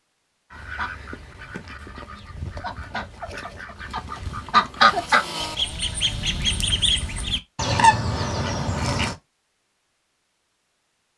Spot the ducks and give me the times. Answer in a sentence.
The ducks can be heard from 0.5 to 9.2 s.